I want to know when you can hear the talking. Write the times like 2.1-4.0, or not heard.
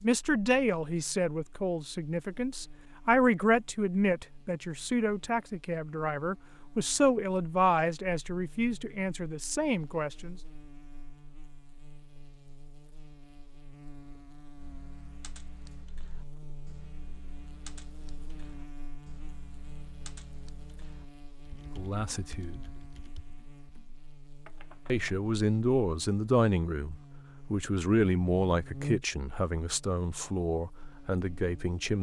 0.0-10.3, 21.8-22.6, 24.9-31.9.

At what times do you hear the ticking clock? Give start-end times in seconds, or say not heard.
not heard.